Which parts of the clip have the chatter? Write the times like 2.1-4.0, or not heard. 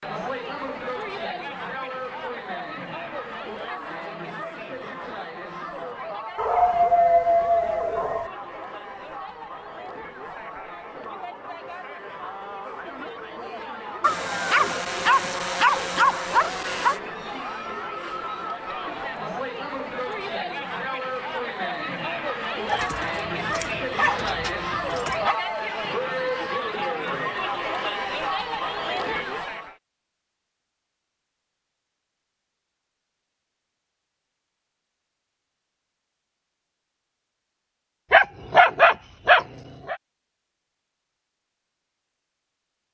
0.0-29.8.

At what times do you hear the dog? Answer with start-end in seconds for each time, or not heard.
6.3-8.3, 14.0-17.0, 22.6-25.4, 38.1-40.0.